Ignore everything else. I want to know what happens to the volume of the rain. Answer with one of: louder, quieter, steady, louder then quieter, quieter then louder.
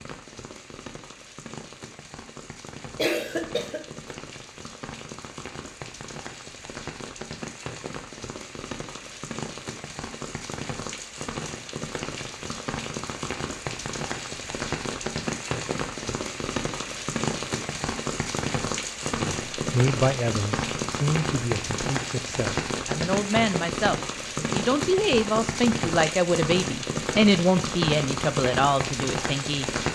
louder.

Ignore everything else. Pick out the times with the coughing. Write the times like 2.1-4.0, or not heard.
2.9-4.1.